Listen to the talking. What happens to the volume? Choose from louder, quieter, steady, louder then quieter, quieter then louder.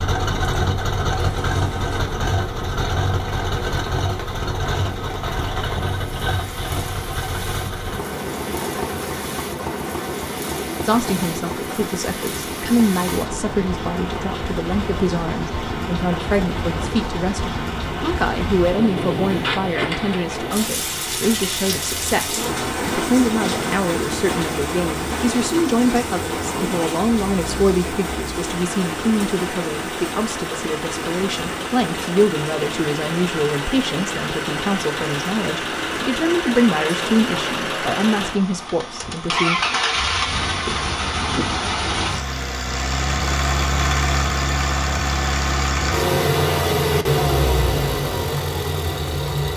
steady.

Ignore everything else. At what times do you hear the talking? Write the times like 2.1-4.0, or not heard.
10.8-39.6.